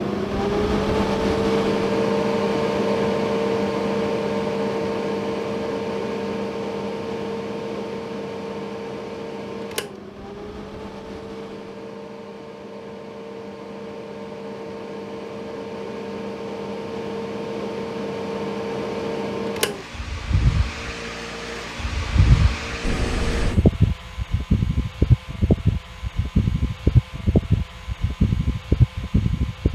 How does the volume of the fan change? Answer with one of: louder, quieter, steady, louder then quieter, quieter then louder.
quieter then louder.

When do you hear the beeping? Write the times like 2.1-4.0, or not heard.
22.8-23.6.